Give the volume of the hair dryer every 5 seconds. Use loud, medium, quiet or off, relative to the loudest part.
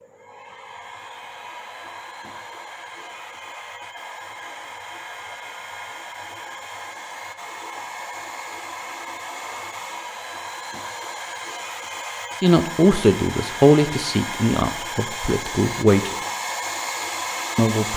medium, medium, loud, loud.